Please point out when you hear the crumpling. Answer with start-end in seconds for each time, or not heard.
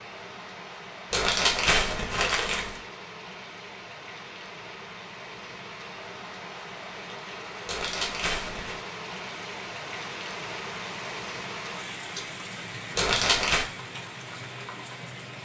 1.1-2.8, 7.7-8.8, 12.9-13.7.